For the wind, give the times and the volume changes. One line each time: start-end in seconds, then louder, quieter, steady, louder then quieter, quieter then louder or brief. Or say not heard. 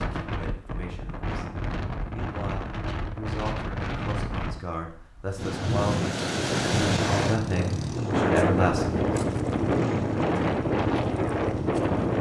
0.0-12.1 louder.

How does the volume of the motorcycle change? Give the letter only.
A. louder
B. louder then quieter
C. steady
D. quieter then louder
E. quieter
C.